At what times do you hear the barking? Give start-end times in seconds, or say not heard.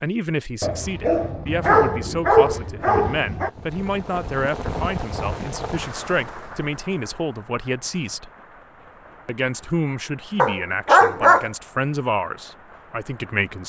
0.6-3.5, 10.3-11.5.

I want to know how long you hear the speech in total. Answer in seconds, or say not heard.
13 s.